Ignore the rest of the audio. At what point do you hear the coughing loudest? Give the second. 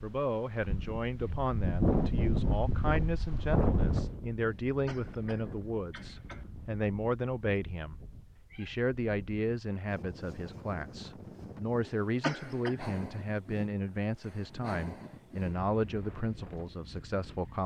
12 s.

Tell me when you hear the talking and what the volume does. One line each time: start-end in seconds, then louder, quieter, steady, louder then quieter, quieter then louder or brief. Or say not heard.
0.0-17.6 steady.